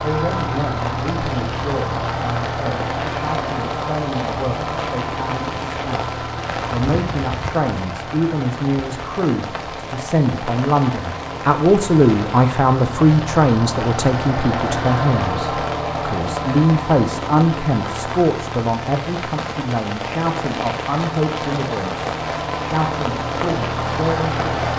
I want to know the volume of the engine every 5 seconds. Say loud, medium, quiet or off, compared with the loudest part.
loud, medium, loud, loud, loud.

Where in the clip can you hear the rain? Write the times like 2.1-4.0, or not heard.
0.0-24.7.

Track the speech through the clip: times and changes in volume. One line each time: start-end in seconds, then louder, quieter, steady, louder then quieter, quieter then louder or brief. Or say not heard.
0.0-24.7 louder then quieter.